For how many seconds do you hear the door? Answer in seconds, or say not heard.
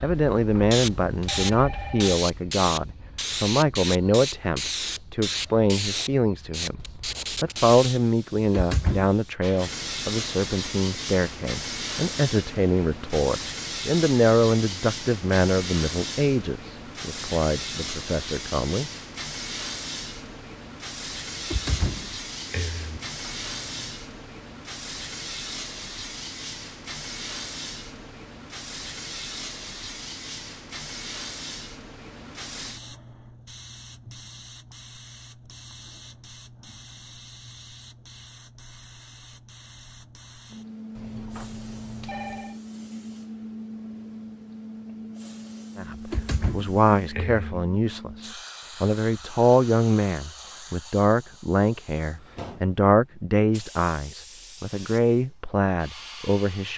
4 s.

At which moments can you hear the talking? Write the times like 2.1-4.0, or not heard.
0.0-18.9, 45.8-56.7.